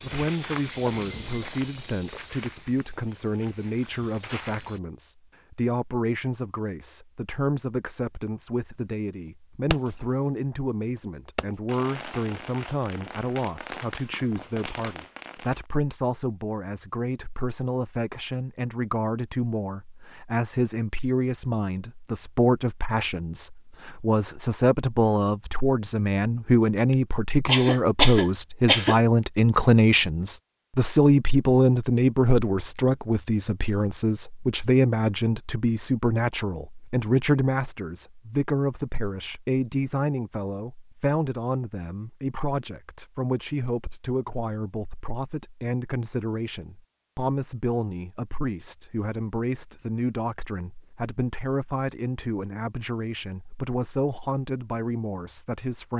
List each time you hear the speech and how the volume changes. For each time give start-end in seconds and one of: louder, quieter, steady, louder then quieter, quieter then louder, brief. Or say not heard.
0.0-55.9 louder then quieter.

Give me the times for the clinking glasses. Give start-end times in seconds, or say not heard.
0.9-1.5.